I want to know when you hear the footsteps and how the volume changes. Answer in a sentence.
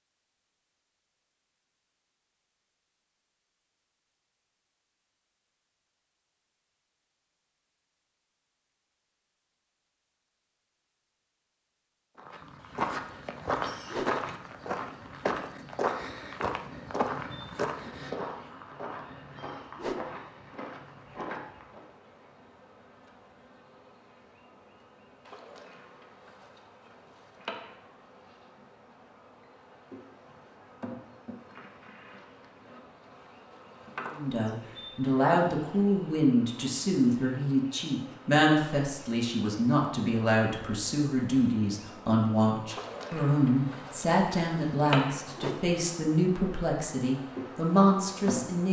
The footsteps can be heard from 12.2 to 21.9 s, getting quieter.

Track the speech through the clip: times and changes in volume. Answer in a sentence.
You can hear the speech from 34.1 to 48.6 s, at a steady volume.